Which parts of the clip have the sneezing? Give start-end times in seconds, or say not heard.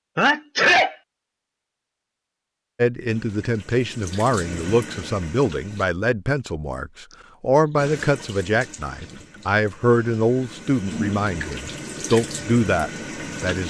0.1-0.9, 7.1-7.8.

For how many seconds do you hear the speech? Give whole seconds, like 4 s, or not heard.
11 s.